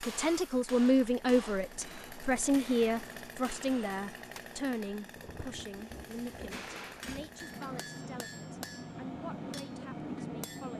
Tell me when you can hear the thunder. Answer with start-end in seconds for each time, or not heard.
5.2-7.6.